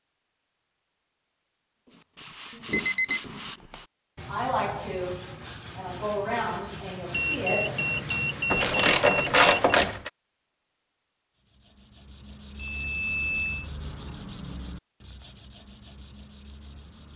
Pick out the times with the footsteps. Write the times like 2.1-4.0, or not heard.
not heard.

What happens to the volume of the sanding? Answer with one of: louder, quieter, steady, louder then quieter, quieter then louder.
quieter.